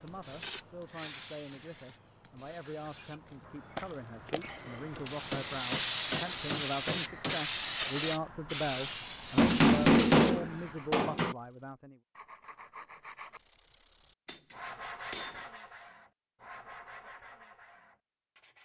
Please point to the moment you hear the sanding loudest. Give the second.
15 s.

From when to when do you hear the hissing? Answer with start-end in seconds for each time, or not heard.
0.0-10.9.